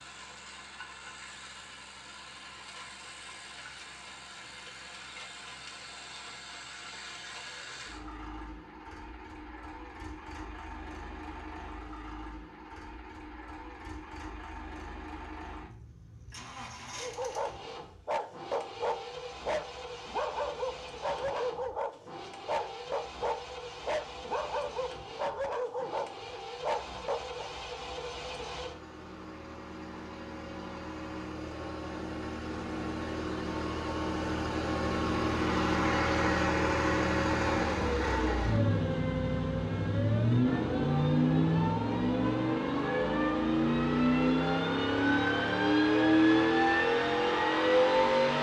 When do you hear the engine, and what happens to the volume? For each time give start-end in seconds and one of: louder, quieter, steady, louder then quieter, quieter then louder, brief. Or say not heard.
0.0-48.3 louder.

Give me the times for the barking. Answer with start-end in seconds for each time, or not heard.
16.9-27.5.